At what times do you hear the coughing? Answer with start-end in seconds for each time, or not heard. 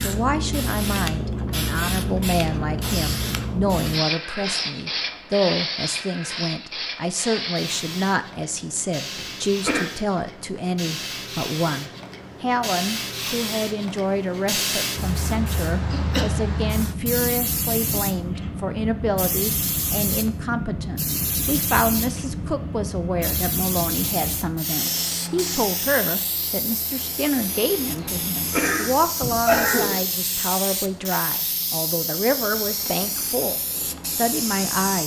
9.1-9.8, 15.3-16.2, 28.0-29.9.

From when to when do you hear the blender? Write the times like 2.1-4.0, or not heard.
not heard.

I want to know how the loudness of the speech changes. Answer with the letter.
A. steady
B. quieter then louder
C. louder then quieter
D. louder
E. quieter
A.